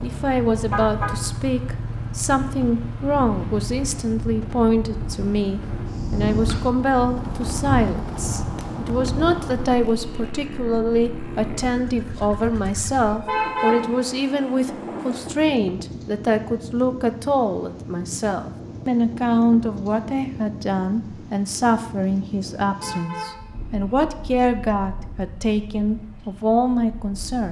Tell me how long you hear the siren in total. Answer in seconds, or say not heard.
not heard.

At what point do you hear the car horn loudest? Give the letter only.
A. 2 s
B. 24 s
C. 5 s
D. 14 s
D.